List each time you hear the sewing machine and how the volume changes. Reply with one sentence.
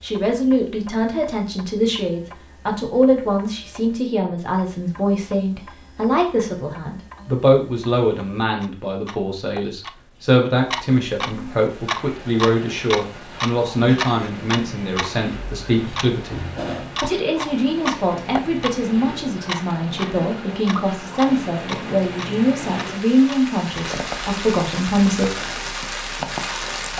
The sewing machine can't be heard in this clip.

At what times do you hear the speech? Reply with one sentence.
You can hear the speech from 0.0 to 25.4 s.